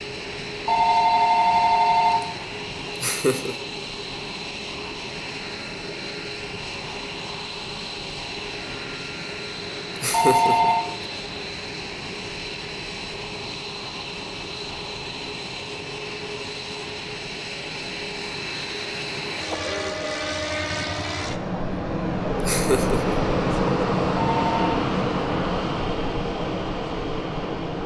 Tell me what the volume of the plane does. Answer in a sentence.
The volume of the plane goes up.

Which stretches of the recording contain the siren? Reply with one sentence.
You can't hear the siren here.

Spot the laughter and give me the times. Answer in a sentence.
You can hear the laughter from 3.0 to 3.5 s, from 10.0 to 10.8 s and from 22.4 to 23.1 s.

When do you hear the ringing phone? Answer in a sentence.
The ringing phone can be heard from 0.7 to 2.3 s, from 10.1 to 10.8 s and from 24.1 to 24.8 s.